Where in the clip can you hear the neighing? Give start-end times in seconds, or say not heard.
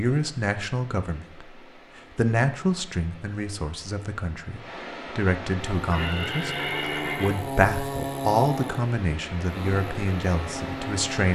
5.9-7.3.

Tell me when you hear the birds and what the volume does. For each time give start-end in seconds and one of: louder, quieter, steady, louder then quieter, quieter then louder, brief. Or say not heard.
not heard.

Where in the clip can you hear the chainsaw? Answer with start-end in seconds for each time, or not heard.
5.6-11.3.